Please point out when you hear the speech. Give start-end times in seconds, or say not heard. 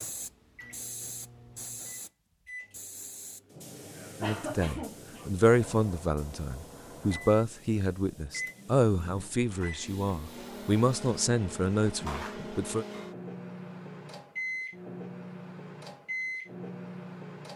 4.2-12.8.